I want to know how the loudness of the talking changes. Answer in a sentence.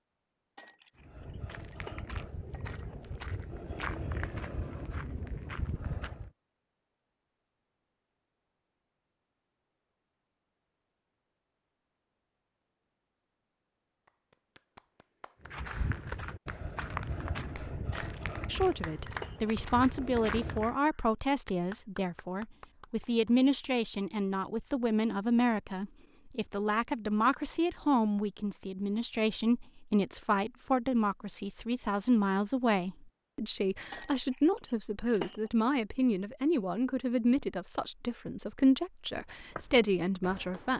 The loudness of the talking stays about the same.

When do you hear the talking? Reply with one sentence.
The talking can be heard from 18.5 to 40.7 s.